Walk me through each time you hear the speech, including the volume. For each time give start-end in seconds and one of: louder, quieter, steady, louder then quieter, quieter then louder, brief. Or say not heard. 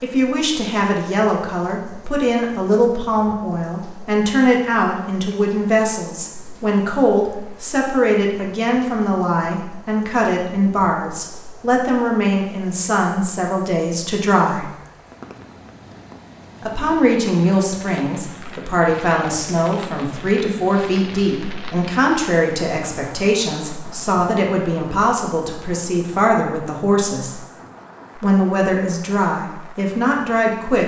0.0-14.7 steady
16.6-27.4 steady
28.2-30.8 brief.